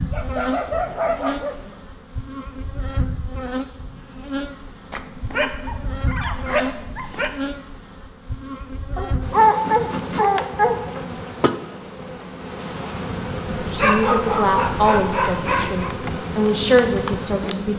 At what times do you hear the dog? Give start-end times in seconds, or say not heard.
0.1-1.8, 4.9-7.3, 8.9-10.8, 13.4-15.9.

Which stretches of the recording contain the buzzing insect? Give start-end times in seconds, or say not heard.
0.0-17.7.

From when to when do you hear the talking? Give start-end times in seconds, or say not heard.
13.7-17.7.